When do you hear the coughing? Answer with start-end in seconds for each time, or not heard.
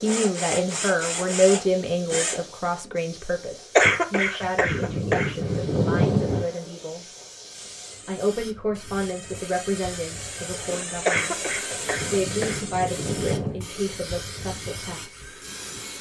3.8-6.5, 11.1-13.6.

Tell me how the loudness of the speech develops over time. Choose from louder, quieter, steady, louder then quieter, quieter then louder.
quieter.